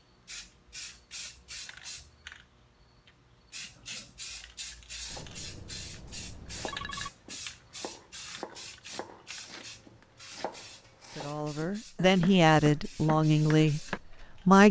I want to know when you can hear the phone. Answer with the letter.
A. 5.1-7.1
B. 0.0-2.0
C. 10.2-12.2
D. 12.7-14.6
A.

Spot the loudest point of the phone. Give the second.
7 s.